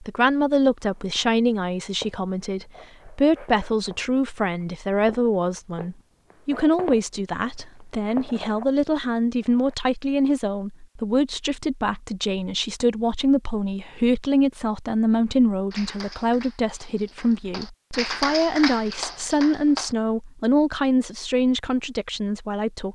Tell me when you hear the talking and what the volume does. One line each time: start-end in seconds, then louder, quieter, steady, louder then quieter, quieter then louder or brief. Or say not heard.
0.0-22.8 steady.